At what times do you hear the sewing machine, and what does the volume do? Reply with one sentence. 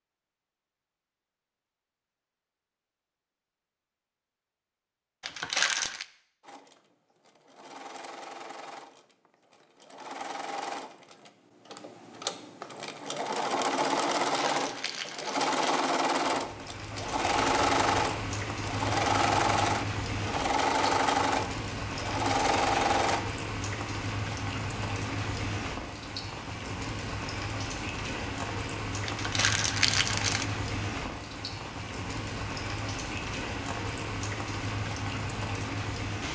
The sewing machine can be heard from 6.4 to 23.2 s, getting louder.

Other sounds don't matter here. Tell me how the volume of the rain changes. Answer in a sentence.
The volume of the rain stays about the same.